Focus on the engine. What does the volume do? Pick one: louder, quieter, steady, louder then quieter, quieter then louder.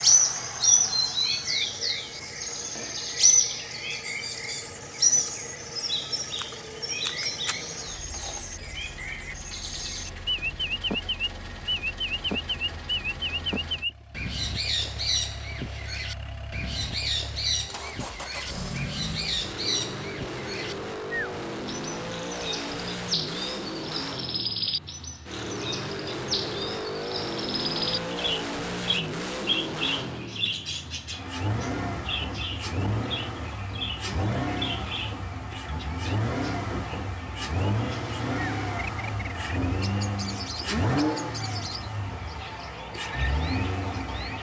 louder.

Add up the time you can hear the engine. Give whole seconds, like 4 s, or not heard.
44 s.